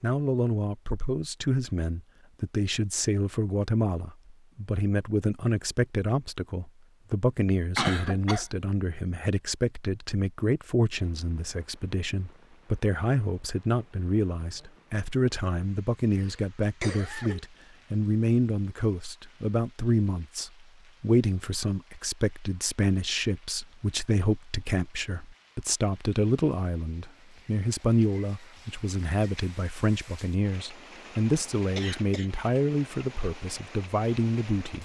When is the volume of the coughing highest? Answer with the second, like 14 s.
8 s.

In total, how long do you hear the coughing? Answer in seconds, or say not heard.
3 s.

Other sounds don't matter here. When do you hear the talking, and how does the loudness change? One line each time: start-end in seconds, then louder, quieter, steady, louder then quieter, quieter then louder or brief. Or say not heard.
0.0-34.8 steady.